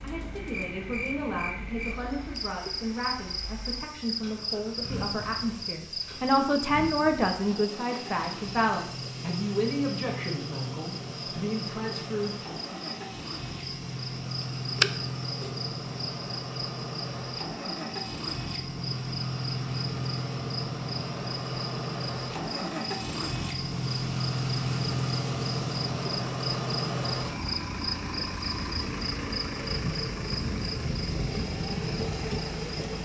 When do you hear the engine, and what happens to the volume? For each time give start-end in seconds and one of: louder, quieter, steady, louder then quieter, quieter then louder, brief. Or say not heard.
0.0-33.0 louder.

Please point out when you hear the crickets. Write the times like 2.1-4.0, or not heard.
0.0-33.0.